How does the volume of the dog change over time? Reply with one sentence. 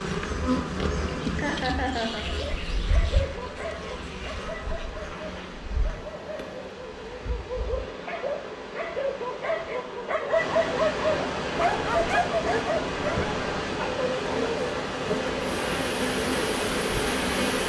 The loudness of the dog goes up.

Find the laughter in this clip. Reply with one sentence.
The laughter can be heard from 1.4 to 2.2 s.